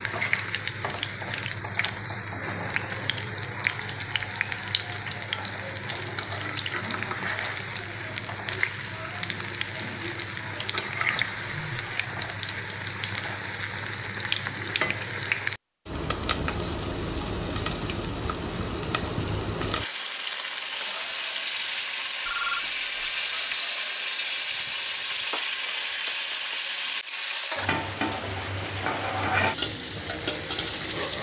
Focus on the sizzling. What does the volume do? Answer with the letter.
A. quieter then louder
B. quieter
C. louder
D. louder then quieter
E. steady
E.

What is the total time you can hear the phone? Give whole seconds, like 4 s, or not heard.
2 s.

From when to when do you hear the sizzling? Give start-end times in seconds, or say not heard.
0.0-31.1.